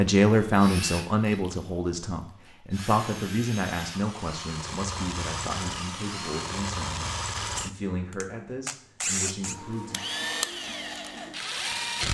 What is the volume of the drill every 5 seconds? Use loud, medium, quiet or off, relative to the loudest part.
medium, loud, loud.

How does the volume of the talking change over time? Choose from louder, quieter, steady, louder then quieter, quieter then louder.
quieter.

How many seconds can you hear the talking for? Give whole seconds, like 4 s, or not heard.
10 s.